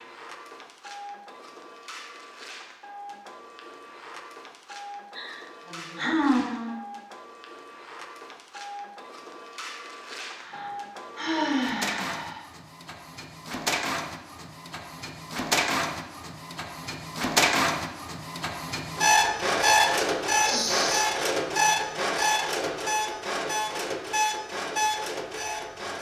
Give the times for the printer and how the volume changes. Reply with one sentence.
You can hear the printer from 0.0 to 25.9 s, getting louder.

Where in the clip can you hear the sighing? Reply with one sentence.
You can hear the sighing from 5.2 to 6.8 s, from 10.4 to 12.4 s and from 20.4 to 21.1 s.